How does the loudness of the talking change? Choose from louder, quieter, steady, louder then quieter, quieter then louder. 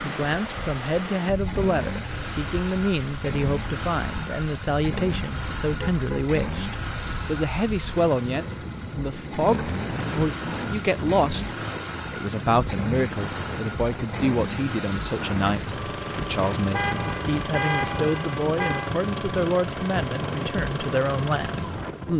steady.